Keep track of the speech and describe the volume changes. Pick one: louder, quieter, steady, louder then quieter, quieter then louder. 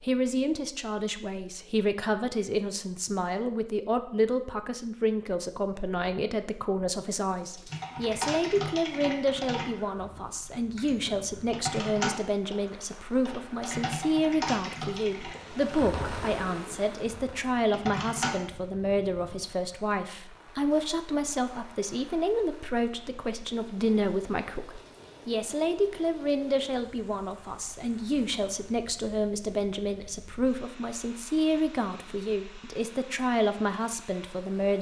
steady.